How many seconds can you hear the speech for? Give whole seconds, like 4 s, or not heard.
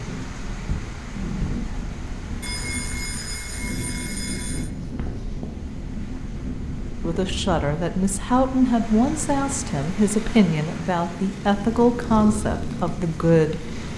7 s.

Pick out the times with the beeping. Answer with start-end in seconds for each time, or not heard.
2.4-4.7.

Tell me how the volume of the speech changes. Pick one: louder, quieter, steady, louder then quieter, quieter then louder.
steady.